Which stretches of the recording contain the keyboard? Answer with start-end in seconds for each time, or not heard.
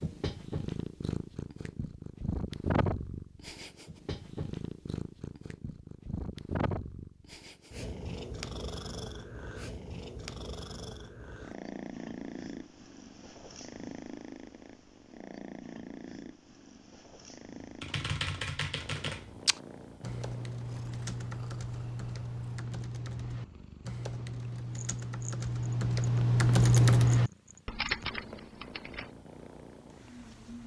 17.6-29.1.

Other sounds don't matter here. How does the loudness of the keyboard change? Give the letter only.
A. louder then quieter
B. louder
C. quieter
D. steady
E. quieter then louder
B.